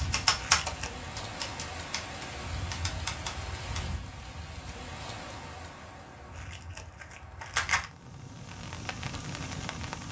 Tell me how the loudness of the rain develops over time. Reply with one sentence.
The volume of the rain goes down, then up.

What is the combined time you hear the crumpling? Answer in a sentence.
You can hear the crumpling for 2 seconds altogether.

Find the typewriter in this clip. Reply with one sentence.
The typewriter can be heard from 0.0 to 3.9 s.